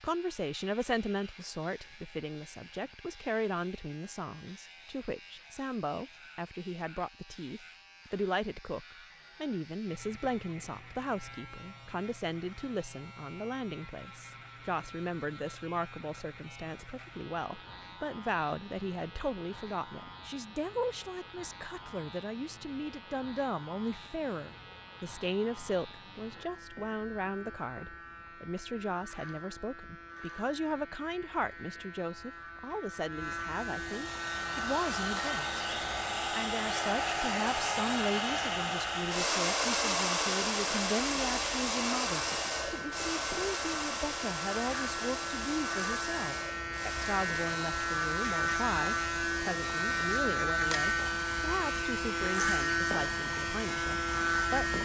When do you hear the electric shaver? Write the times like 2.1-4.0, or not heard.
0.0-54.8.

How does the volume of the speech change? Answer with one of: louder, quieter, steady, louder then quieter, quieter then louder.
steady.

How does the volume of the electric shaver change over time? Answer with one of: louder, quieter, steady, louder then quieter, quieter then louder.
louder.